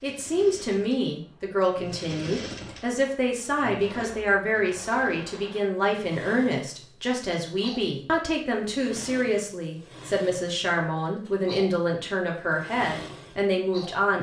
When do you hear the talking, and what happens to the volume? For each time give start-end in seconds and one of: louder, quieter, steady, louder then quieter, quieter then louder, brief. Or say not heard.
0.0-14.1 steady.